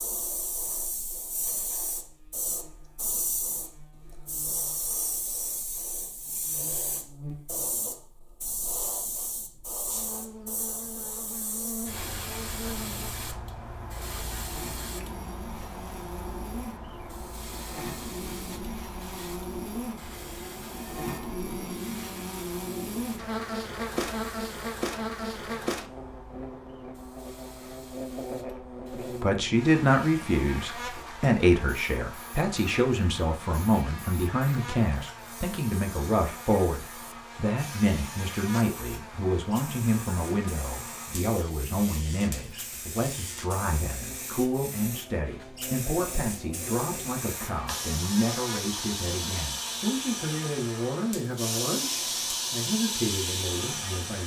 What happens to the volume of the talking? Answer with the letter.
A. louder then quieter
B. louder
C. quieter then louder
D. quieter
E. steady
D.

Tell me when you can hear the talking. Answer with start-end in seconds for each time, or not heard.
29.2-54.2.